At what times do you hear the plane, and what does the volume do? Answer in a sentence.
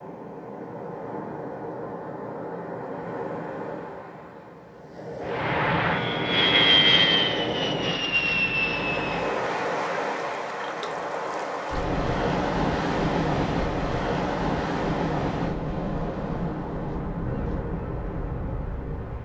The plane can be heard from 5.2 to 9.4 s, getting louder then quieter.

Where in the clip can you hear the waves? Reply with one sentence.
You can hear the waves from 0.0 to 19.1 s.